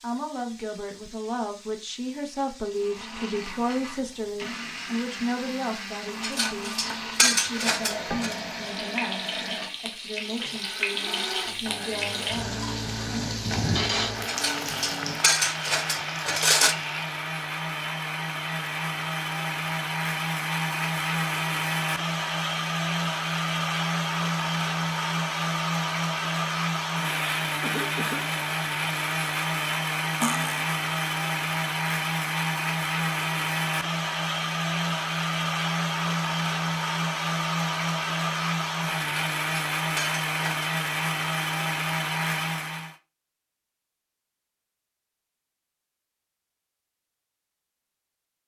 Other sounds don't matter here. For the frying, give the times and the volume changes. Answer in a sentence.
The frying can be heard from 0.0 to 17.2 s, getting louder.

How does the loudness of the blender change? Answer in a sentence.
The volume of the blender goes up.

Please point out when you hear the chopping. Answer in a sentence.
You can't hear the chopping here.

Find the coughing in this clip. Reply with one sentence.
You can hear the coughing from 27.6 to 28.4 s.